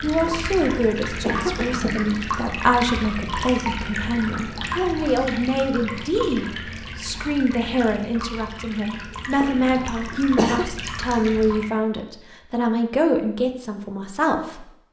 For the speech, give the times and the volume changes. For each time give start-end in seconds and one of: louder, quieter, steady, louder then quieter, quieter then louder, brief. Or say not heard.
0.0-14.7 steady.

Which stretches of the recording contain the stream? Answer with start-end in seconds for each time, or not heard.
0.0-11.7.